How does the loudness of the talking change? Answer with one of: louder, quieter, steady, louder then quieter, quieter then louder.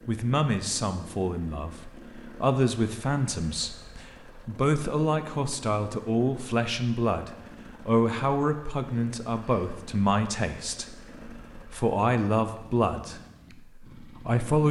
steady.